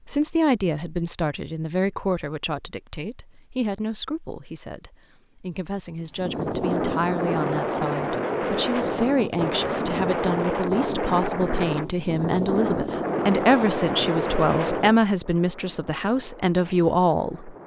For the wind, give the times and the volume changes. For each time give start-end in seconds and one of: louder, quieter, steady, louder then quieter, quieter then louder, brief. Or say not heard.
6.0-17.6 quieter.